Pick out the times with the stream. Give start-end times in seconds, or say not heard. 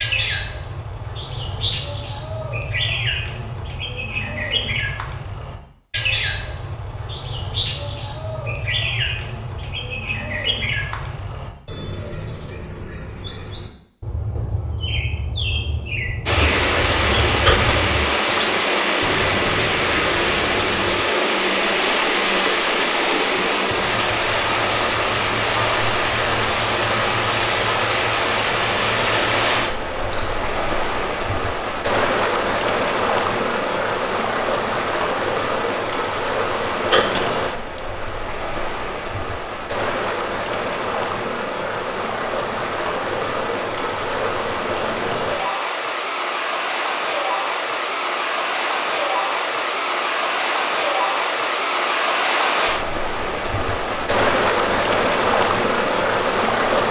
16.2-56.8.